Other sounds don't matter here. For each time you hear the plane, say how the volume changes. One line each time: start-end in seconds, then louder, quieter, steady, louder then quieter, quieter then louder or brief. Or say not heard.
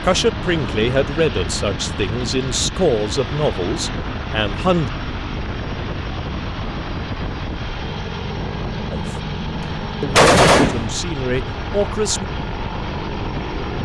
0.0-13.8 steady.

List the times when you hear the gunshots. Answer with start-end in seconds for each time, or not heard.
9.6-10.9.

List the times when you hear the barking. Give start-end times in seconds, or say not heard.
not heard.